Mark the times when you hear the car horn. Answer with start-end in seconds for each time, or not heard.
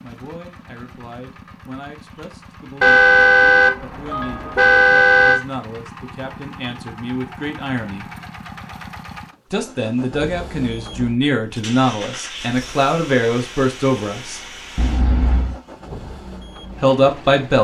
2.8-5.4, 14.8-15.6.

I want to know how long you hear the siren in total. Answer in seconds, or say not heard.
not heard.